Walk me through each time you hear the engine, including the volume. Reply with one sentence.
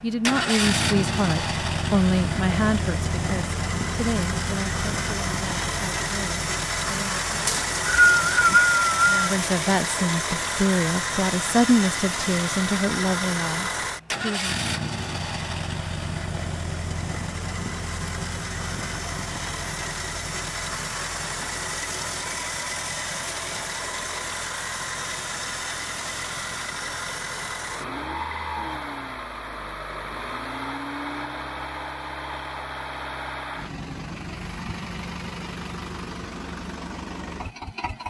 You can hear the engine from 0.0 to 38.0 s, getting quieter.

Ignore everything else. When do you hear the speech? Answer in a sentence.
You can hear the speech from 0.0 to 7.5 s and from 9.1 to 14.7 s.